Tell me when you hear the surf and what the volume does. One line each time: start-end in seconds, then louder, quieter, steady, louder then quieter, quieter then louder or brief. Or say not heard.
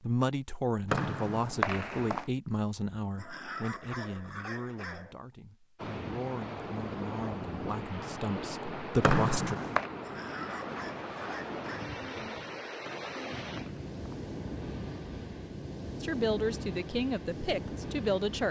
5.8-18.4 steady.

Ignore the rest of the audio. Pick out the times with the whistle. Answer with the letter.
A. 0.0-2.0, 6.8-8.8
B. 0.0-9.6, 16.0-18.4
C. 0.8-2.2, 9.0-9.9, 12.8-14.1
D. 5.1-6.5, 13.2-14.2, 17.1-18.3
C.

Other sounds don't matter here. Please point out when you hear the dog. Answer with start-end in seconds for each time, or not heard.
3.1-5.2, 10.0-11.9.